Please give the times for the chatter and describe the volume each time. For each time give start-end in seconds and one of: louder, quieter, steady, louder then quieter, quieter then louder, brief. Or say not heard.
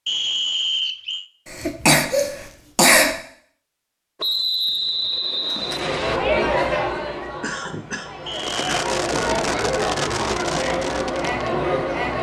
5.6-12.1 quieter then louder.